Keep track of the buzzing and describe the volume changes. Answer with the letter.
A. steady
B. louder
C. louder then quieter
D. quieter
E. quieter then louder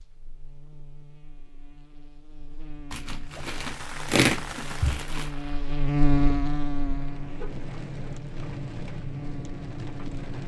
C.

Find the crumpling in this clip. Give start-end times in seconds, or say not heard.
2.9-5.3.